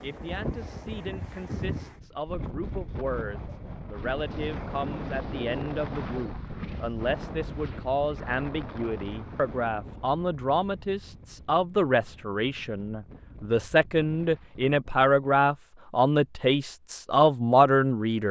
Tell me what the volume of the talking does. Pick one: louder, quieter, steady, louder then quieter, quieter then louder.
louder.